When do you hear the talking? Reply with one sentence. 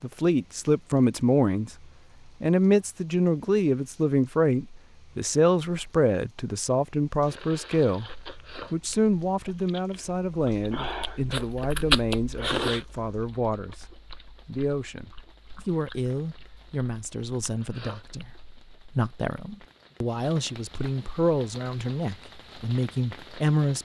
You can hear the talking from 0.0 to 1.7 s and from 2.4 to 23.8 s.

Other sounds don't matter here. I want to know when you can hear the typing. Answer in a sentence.
The typing can't be heard in this clip.